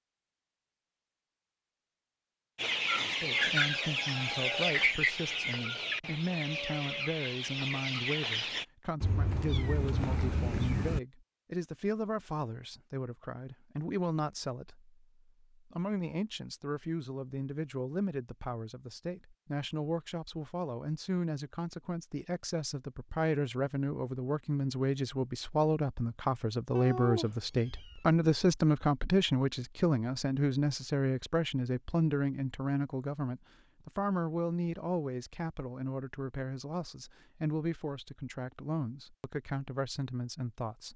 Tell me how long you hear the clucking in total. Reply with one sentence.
You can hear the clucking for 6 seconds altogether.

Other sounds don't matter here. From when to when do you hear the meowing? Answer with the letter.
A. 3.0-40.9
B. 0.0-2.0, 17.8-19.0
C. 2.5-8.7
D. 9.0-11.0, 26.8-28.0
D.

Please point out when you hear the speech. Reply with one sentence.
The speech can be heard from 3.0 to 40.9 s.